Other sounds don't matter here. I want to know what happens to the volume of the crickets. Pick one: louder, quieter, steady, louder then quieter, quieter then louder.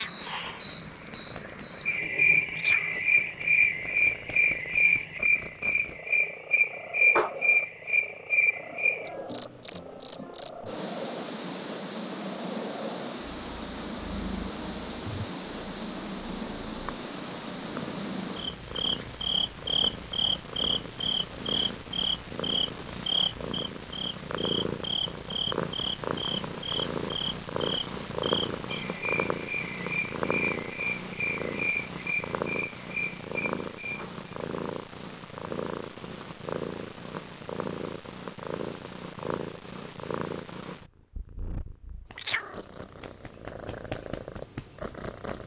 quieter.